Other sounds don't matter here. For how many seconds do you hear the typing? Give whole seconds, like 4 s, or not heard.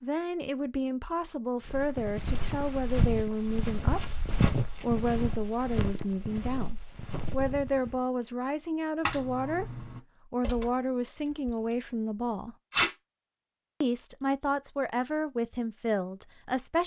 3 s.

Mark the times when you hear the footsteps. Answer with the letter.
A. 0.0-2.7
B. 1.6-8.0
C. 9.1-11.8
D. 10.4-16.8
B.